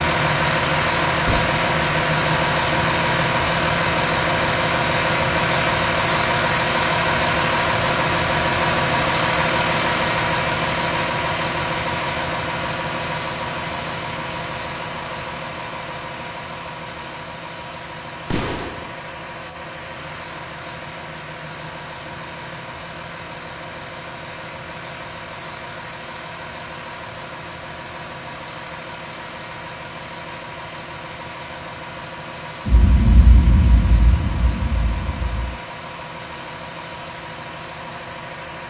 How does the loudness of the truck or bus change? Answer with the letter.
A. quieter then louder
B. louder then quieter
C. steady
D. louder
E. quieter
E.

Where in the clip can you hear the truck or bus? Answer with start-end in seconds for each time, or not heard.
0.0-38.6.